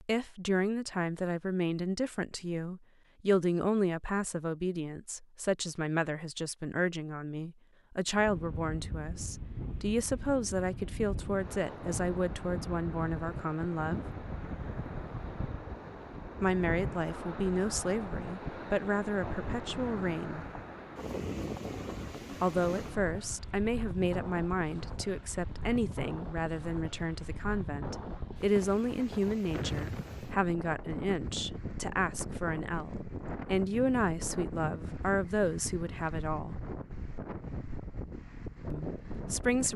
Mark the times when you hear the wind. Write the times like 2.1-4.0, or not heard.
8.1-39.7.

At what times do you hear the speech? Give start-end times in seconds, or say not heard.
0.0-14.1, 16.4-20.4, 22.4-36.5, 38.7-39.7.